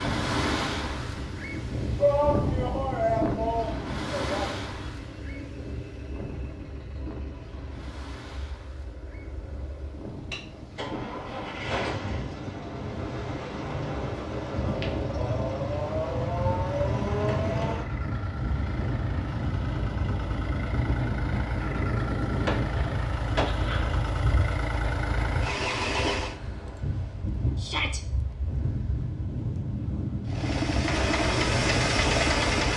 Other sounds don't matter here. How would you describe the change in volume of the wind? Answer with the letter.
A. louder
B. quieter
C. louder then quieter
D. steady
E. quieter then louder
E.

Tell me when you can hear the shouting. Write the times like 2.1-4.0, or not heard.
1.9-4.5, 27.6-28.0.